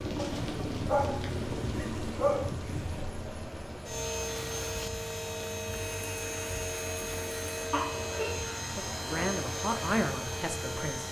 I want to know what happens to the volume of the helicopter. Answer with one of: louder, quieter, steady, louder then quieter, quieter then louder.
steady.